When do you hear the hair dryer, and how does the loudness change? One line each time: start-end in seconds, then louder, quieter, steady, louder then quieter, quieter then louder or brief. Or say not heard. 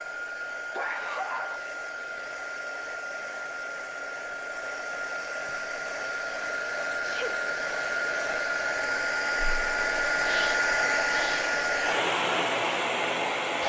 0.0-13.6 louder.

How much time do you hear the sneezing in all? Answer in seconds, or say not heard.
3 s.